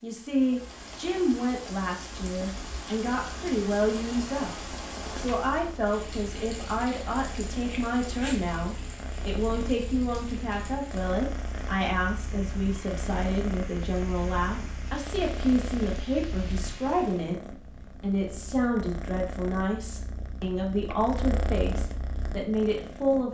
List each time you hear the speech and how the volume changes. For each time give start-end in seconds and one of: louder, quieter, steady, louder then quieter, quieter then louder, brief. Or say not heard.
0.0-23.3 steady.